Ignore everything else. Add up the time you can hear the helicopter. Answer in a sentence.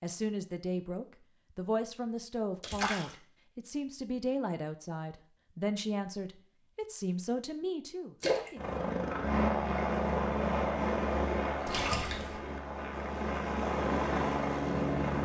You can hear the helicopter for 7 seconds altogether.